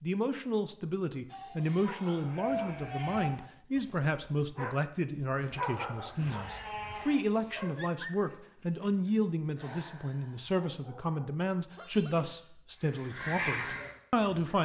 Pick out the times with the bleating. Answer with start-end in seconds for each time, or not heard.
1.3-3.3, 6.2-7.5, 11.7-12.5.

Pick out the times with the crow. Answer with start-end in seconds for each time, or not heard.
12.8-14.6.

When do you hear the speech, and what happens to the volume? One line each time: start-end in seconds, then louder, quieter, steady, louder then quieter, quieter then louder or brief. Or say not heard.
0.0-14.6 steady.